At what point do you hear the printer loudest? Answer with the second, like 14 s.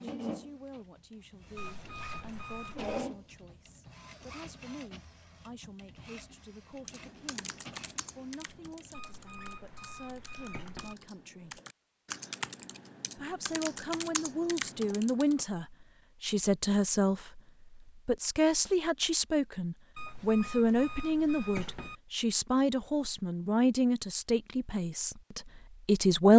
3 s.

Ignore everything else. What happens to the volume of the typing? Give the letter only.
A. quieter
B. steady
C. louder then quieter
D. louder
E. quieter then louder
E.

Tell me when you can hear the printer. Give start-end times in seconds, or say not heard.
0.0-9.0.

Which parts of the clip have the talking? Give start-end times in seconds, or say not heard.
0.0-7.5, 8.2-11.6, 13.2-26.3.